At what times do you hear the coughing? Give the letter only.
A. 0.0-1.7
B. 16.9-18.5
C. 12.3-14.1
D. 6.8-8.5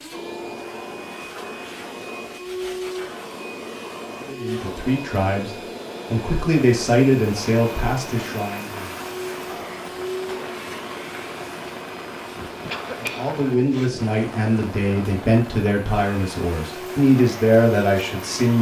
C.